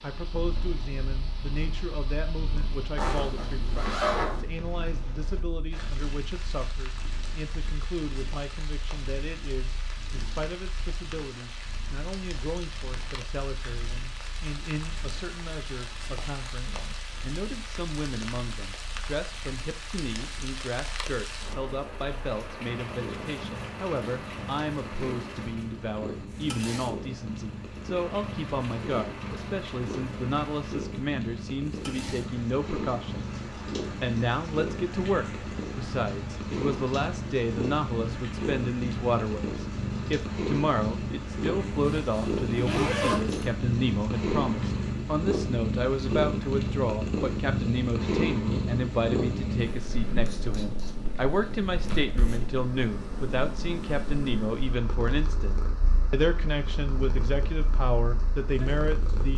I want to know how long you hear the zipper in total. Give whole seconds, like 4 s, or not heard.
3 s.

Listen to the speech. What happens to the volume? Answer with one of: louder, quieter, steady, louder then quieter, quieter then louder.
louder.